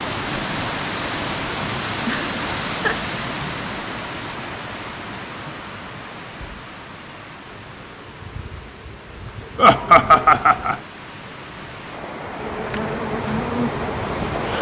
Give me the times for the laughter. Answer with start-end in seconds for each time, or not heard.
2.0-3.1, 9.6-10.8.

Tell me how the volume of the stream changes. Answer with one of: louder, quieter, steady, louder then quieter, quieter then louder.
quieter then louder.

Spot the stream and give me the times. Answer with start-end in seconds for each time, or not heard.
0.0-14.5.